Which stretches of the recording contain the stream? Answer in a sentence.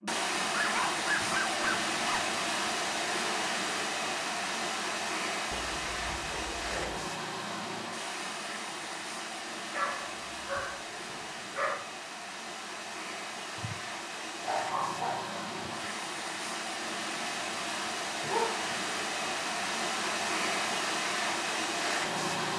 You can hear the stream from 0.0 to 22.5 s.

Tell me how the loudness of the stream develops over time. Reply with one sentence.
The volume of the stream goes down, then up.